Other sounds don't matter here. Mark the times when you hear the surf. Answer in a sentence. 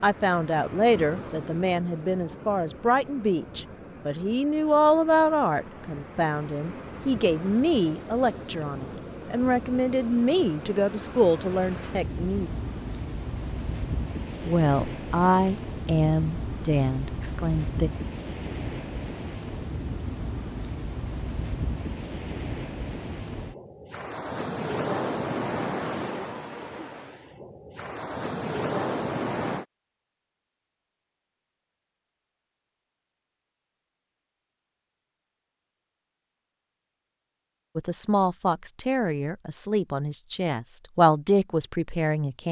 The surf can be heard from 0.0 to 29.6 s.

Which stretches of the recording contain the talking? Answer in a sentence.
You can hear the talking from 0.0 to 12.5 s, from 14.4 to 17.9 s and from 37.8 to 42.4 s.